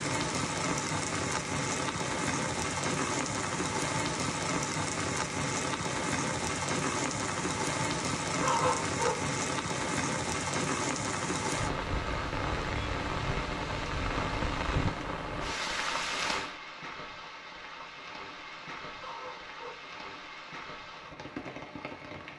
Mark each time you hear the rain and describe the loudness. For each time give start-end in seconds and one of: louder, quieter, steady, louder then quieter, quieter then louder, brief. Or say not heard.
0.0-22.3 quieter.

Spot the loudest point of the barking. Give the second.
9 s.